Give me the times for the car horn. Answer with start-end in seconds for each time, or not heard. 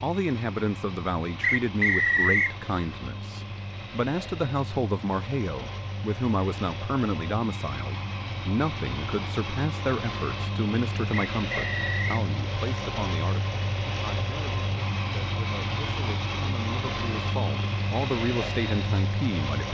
not heard.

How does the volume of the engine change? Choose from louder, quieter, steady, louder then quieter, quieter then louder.
louder.